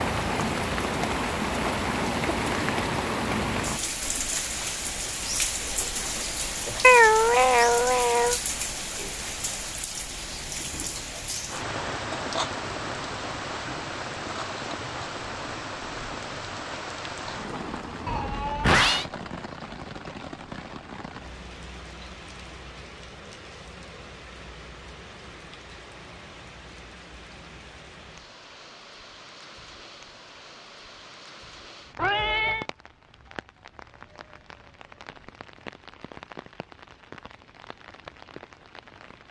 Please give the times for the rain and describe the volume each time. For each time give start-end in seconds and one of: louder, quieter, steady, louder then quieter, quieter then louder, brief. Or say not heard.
0.0-39.2 quieter.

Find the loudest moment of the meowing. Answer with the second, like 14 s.
7 s.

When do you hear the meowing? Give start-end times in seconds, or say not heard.
6.8-8.3, 18.1-19.1, 31.9-32.6.